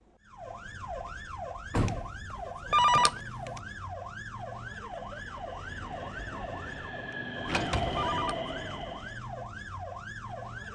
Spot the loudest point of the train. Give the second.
8 s.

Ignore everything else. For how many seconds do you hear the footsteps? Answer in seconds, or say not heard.
not heard.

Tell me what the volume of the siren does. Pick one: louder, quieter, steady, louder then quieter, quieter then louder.
steady.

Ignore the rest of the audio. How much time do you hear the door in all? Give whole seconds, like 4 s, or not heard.
2 s.